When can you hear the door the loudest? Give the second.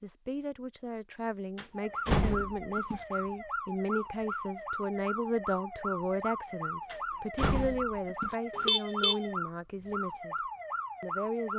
2 s.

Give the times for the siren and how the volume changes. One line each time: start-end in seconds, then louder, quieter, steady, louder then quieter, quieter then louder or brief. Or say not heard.
1.8-11.5 steady.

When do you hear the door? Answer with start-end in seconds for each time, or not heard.
1.6-3.0, 6.9-8.3.